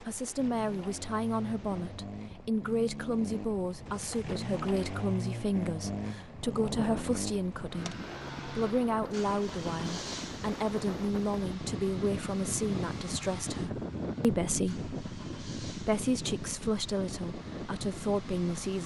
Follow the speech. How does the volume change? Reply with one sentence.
The loudness of the speech stays about the same.